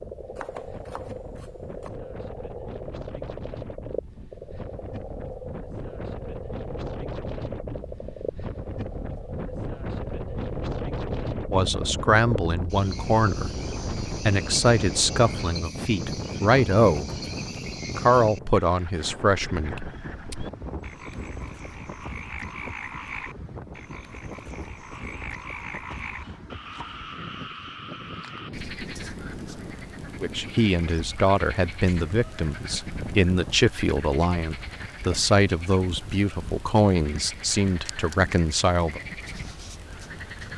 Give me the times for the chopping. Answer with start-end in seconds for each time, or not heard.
0.3-1.9, 25.9-27.1.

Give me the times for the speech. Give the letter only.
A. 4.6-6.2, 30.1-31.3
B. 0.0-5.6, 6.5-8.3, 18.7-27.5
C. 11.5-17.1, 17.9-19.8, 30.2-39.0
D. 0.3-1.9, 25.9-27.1
C.